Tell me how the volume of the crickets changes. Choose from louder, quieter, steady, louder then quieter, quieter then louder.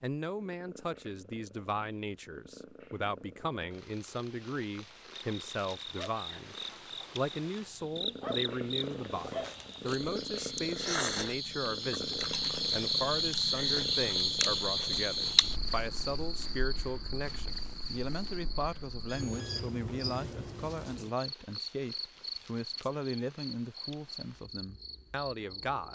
louder then quieter.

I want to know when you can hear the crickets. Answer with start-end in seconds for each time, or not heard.
5.1-25.9.